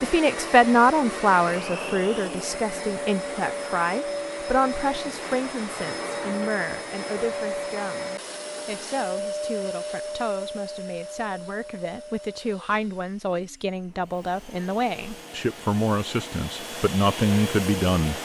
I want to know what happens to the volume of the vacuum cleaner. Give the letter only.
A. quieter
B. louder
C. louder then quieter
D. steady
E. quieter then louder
E.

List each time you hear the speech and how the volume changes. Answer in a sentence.
You can hear the speech from 0.0 to 18.2 s, getting quieter then louder.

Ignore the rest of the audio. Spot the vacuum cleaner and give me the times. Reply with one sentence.
You can hear the vacuum cleaner from 0.0 to 18.2 s.